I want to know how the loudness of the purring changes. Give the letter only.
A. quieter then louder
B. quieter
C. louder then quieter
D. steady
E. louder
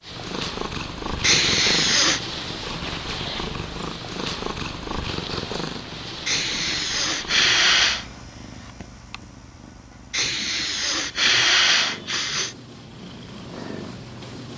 A.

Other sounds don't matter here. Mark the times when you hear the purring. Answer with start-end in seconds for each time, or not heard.
0.0-14.5.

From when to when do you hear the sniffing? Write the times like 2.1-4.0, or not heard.
1.2-2.2, 6.2-8.1, 10.1-12.6.